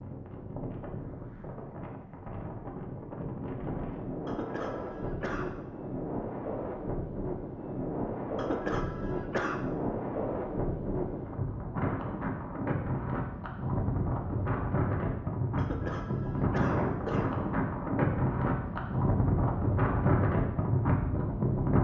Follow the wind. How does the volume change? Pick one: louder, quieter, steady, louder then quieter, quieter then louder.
louder.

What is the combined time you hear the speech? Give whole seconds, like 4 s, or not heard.
not heard.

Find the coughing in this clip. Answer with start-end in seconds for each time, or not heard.
4.2-5.7, 8.3-9.7, 15.6-17.4.